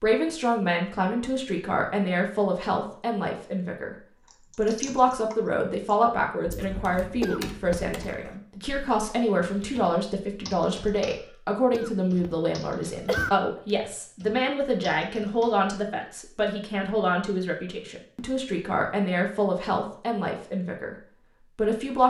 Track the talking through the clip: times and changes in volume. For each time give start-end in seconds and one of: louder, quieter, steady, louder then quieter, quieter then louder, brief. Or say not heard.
0.0-20.9 steady
21.6-22.0 brief.